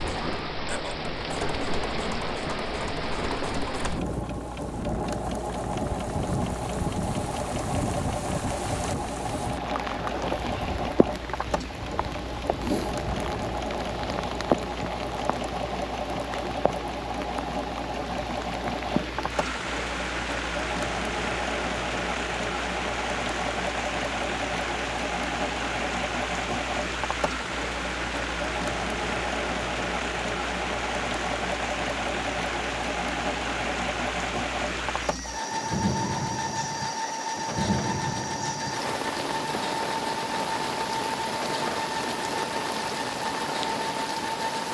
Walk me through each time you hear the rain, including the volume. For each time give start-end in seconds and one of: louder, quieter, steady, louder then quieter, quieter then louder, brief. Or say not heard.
0.0-44.6 steady.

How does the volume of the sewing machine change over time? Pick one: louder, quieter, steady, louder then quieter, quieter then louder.
steady.